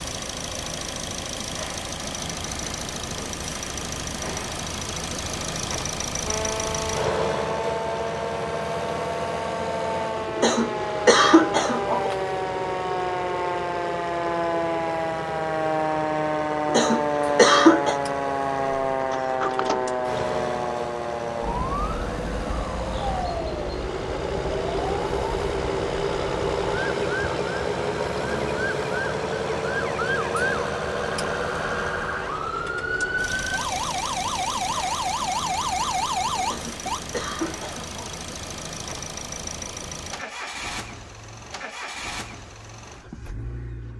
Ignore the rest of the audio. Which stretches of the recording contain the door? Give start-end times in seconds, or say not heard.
19.0-19.9.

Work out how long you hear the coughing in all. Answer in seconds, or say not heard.
5 s.